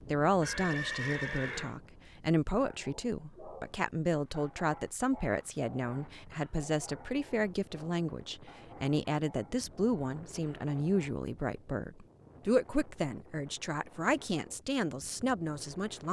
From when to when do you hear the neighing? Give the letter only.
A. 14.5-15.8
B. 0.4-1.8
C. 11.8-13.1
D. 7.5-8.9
B.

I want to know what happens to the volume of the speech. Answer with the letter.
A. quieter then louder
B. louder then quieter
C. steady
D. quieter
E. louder
C.